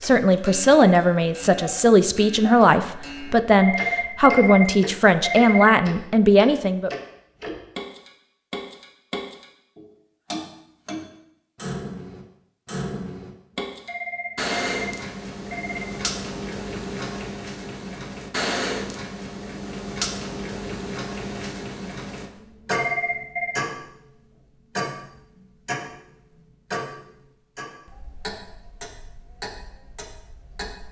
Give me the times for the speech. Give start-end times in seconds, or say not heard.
0.0-6.9.